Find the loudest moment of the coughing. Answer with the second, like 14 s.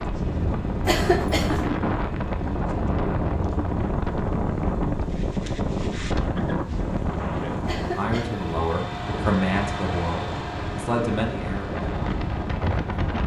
1 s.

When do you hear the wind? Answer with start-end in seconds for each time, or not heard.
0.0-13.2.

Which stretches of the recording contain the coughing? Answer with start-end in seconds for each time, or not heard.
0.8-1.7, 7.7-8.4.